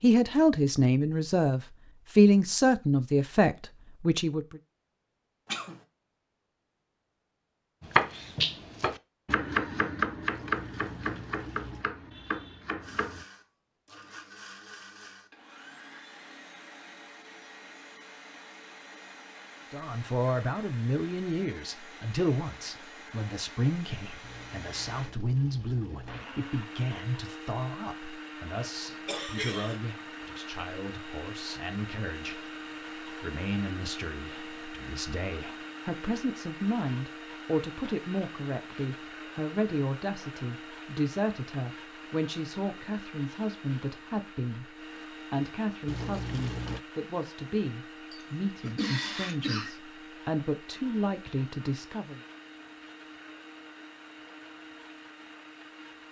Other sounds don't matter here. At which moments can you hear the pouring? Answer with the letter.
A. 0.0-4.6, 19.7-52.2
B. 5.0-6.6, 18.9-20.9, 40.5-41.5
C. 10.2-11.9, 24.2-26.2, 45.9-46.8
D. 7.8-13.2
C.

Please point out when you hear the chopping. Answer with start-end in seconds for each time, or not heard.
7.8-13.2.